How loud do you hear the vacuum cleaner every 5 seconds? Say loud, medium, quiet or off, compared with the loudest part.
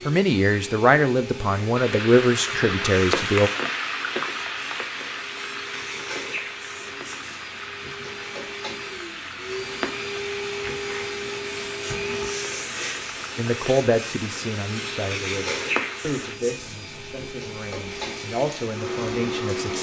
medium, medium, loud, loud.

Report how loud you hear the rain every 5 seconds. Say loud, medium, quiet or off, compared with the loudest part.
loud, medium, medium, medium.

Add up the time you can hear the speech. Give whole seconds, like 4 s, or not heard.
10 s.